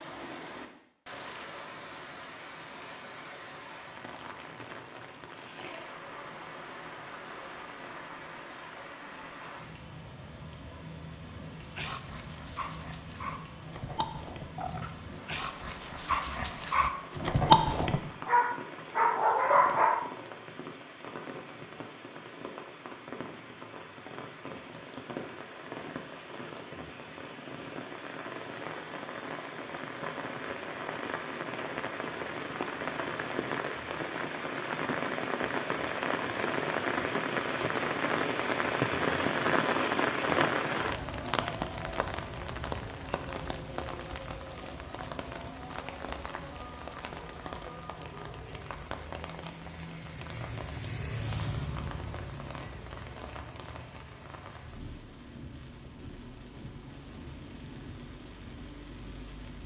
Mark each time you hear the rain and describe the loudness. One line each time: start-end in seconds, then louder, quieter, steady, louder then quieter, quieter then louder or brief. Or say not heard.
0.0-59.6 louder then quieter.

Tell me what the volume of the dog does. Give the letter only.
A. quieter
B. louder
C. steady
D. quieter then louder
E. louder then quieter
B.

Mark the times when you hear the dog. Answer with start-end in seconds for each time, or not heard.
11.6-20.1.